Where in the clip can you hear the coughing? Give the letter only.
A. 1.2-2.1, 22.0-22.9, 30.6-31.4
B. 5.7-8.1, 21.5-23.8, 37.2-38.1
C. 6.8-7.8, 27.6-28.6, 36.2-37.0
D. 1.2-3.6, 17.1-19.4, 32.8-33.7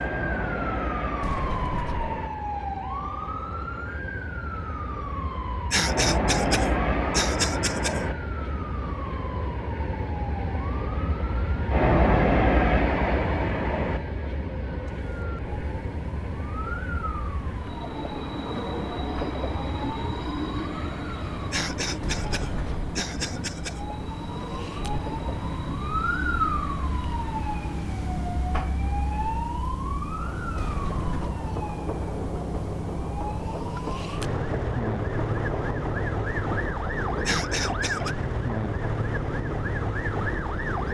B.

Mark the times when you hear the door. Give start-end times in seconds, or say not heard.
1.2-2.1, 22.0-22.9, 30.6-31.4.